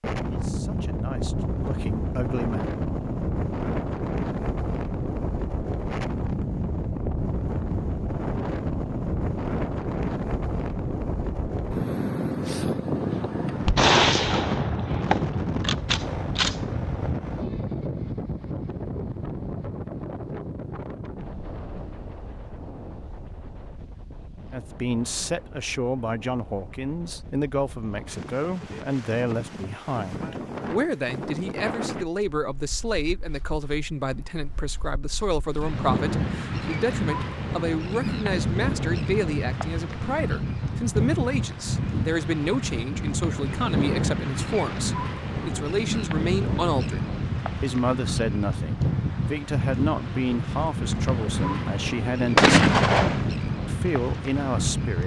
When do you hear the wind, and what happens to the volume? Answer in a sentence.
You can hear the wind from 0.0 to 55.0 s, getting quieter then louder.